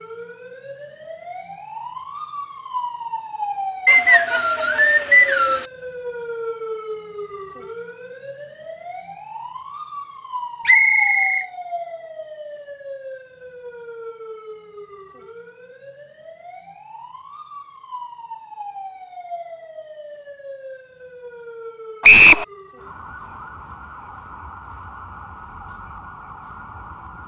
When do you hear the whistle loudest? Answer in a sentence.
The loudest moment of the whistle is at 22 seconds.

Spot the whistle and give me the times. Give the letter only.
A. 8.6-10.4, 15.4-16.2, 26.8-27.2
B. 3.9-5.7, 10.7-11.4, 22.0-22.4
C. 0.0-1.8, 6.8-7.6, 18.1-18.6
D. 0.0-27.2
B.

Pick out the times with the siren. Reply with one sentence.
The siren can be heard from 0.0 to 27.2 s.